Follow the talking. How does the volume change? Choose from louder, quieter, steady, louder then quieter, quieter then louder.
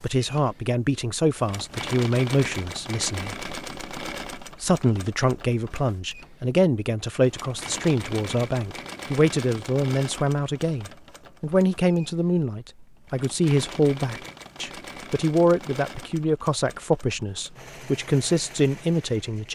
steady.